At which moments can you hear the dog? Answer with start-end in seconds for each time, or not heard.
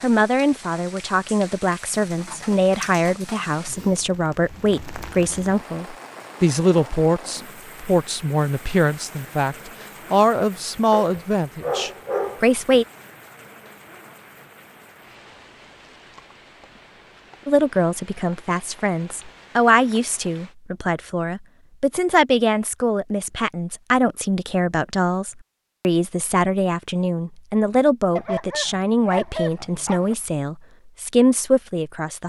10.9-12.4, 28.1-30.1.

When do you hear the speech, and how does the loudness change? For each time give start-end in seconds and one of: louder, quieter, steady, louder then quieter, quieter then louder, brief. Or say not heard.
0.0-12.8 steady
17.4-32.2 steady.